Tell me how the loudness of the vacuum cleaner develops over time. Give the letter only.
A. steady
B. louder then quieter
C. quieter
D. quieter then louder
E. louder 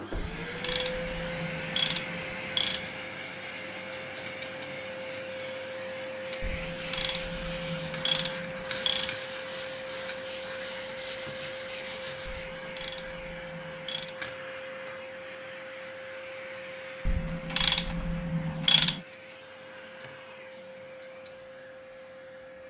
C.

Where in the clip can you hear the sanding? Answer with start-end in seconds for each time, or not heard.
6.7-12.6.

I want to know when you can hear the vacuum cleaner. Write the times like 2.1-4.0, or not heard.
0.0-22.6.